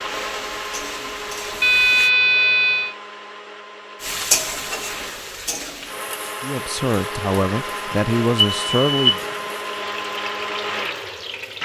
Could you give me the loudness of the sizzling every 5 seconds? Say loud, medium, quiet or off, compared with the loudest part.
loud, medium, medium.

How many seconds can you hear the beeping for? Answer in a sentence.
The beeping can be heard for 2 seconds in total.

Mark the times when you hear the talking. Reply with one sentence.
You can hear the talking from 6.4 to 9.2 s.